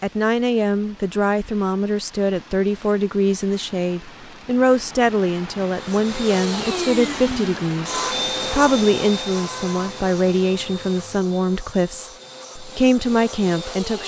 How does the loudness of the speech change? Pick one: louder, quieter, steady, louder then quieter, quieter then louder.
steady.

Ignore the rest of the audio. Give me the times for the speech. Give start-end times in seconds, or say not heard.
0.0-14.0.